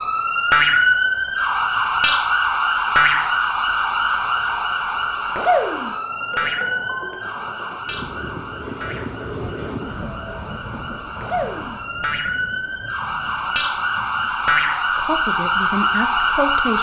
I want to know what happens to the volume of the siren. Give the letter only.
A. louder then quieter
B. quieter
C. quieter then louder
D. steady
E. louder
C.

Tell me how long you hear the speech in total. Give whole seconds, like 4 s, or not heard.
2 s.